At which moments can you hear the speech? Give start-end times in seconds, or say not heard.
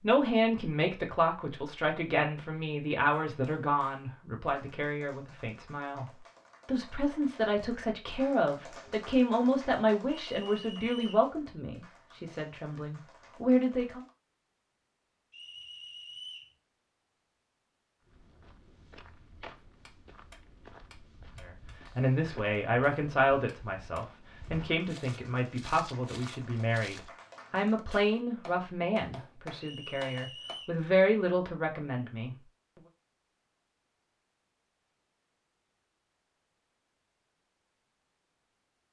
0.0-14.0, 21.4-32.4.